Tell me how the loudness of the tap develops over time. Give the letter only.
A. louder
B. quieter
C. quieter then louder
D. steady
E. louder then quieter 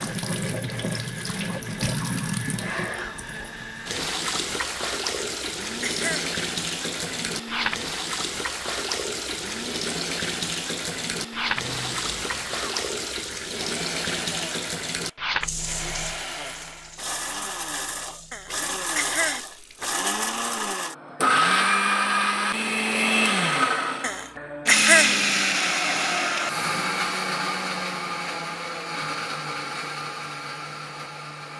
B.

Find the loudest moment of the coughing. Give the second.
25 s.